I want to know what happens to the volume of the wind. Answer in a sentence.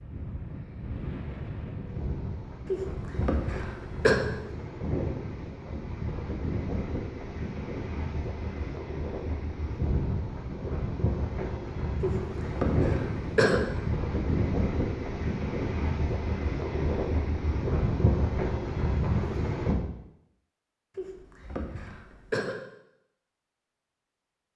The volume of the wind goes up.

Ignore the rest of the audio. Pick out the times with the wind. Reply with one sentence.
The wind can be heard from 0.0 to 19.8 s.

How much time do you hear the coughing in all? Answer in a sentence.
You can hear the coughing for 5 seconds altogether.